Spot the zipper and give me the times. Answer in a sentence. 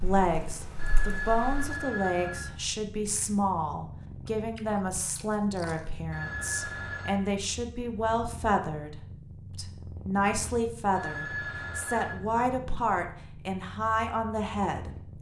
The zipper can't be heard in this clip.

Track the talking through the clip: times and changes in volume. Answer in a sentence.
The talking can be heard from 0.0 to 14.9 s, at a steady volume.